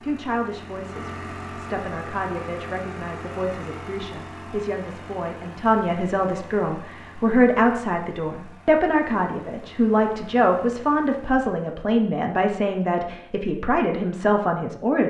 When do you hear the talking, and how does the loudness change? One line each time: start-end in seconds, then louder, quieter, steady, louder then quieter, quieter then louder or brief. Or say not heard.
0.0-15.0 louder.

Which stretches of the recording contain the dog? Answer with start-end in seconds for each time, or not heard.
not heard.